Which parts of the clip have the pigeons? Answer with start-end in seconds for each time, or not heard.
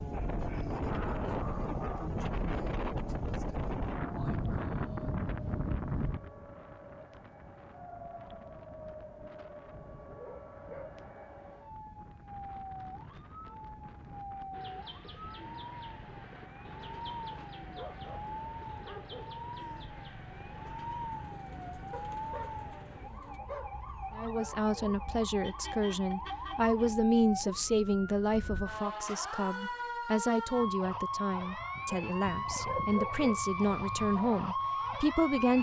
14.5-23.4.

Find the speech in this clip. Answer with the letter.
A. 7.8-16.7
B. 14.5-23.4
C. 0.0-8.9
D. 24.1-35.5
D.